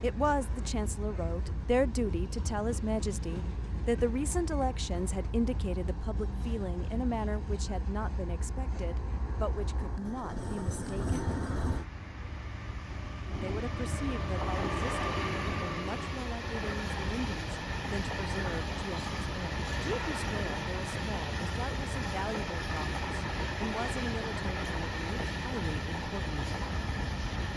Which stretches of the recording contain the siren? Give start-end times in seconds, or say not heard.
not heard.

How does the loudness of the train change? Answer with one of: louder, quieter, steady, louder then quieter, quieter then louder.
louder.